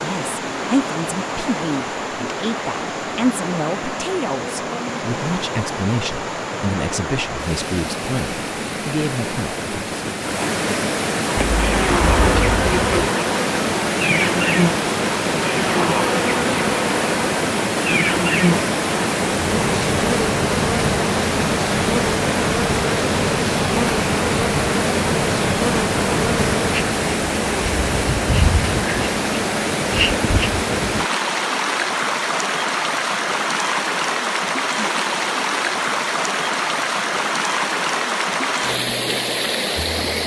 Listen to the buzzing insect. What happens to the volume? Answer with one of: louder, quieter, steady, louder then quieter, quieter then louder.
steady.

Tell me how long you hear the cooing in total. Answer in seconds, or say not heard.
2 s.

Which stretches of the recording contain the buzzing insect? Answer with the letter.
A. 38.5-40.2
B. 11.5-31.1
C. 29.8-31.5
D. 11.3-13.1
B.